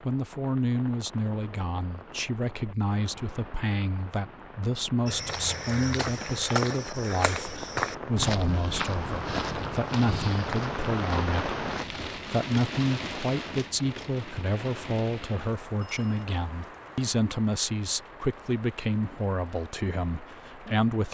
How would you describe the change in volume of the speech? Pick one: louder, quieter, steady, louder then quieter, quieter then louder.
steady.